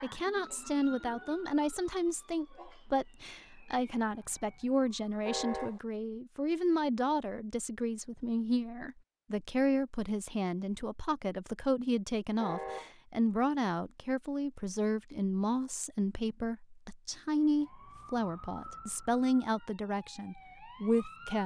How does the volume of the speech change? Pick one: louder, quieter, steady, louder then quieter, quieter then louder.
steady.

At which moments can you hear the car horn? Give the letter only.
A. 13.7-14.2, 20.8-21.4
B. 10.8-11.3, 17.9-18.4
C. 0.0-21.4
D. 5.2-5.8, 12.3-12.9
D.